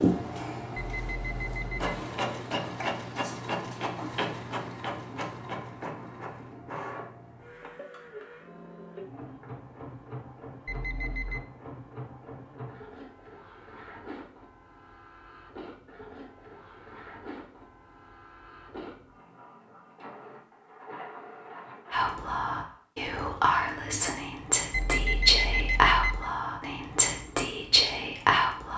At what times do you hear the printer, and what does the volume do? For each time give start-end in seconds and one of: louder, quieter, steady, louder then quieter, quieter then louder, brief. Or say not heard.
0.0-22.9 quieter.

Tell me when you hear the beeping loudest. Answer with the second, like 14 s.
25 s.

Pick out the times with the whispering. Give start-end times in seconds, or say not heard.
21.9-28.7.